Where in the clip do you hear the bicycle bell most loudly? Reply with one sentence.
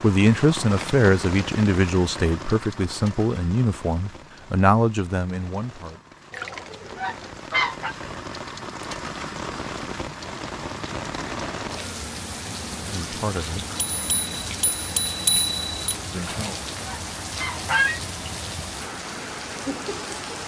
The volume of the bicycle bell peaks at 15 seconds.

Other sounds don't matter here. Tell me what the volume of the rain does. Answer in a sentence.
The loudness of the rain goes down, then up.